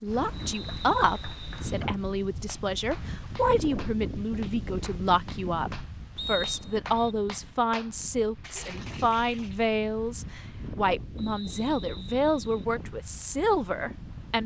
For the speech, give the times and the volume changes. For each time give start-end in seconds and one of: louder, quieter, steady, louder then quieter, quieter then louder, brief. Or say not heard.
0.0-14.4 steady.